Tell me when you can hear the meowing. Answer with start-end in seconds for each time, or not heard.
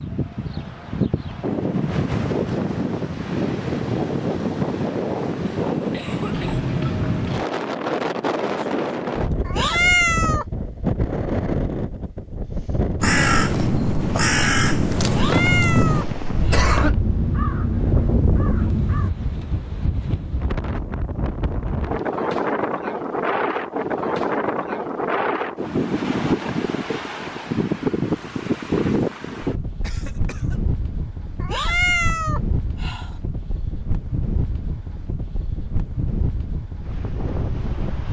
9.4-10.4, 15.1-16.6, 31.4-33.1.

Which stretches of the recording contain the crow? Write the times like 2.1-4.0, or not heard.
13.0-19.1.